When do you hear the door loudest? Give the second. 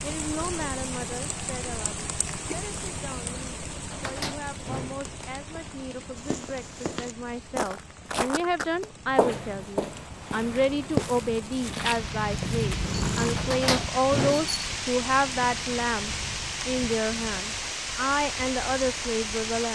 14 s.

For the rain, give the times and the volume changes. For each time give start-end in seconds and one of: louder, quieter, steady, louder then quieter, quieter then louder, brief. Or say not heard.
0.0-19.7 quieter then louder.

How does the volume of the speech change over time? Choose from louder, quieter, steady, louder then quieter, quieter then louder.
louder.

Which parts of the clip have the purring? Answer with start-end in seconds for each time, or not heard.
8.9-17.4.